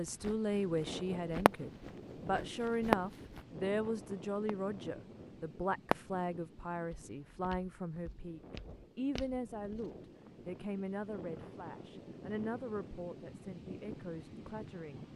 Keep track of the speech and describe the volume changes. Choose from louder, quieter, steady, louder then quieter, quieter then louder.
quieter.